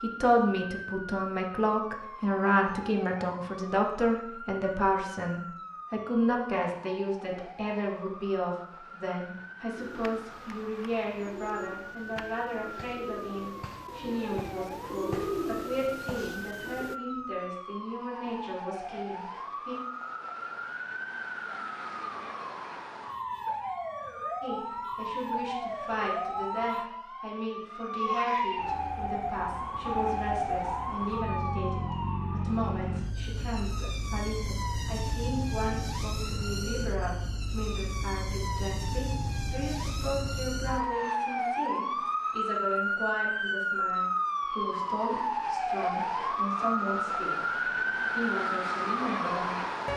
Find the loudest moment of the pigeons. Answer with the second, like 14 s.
15 s.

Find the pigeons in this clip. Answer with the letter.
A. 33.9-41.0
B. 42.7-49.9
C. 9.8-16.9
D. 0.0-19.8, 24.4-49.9
C.